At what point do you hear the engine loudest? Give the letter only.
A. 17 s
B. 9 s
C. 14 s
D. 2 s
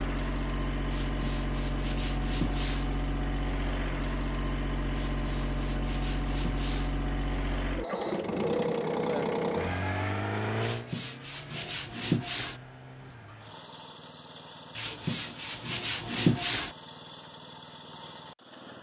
B.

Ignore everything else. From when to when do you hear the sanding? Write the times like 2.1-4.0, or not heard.
0.9-2.9, 4.9-6.9, 10.6-12.6, 14.8-16.8.